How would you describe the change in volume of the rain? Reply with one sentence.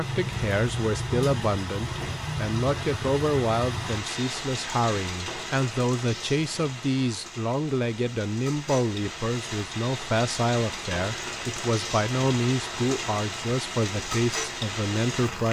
The volume of the rain goes down, then up.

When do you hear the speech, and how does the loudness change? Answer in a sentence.
The speech can be heard from 0.0 to 15.4 s, at a steady volume.